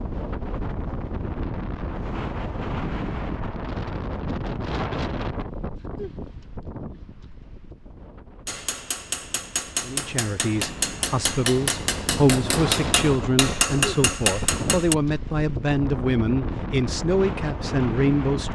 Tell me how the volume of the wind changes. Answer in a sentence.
The volume of the wind goes down, then up.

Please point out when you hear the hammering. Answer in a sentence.
The hammering can be heard from 8.4 to 14.9 s.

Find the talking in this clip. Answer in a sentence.
The talking can be heard from 9.8 to 18.4 s.